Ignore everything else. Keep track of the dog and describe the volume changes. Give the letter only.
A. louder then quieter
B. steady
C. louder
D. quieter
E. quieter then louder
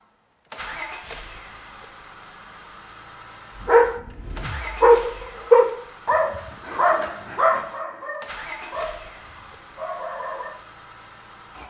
D.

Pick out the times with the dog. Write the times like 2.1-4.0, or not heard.
3.6-10.5.